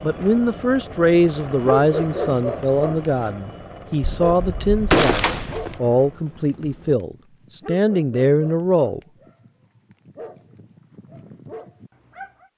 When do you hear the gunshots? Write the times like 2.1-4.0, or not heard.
4.0-5.8.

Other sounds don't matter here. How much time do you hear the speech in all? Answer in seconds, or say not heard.
9 s.